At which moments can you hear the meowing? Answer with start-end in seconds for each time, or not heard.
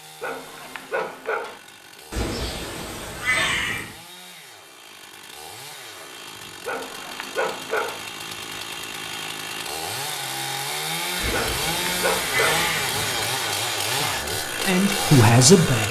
2.1-3.9, 11.2-13.2.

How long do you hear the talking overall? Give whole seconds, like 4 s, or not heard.
2 s.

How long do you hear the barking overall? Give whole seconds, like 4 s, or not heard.
4 s.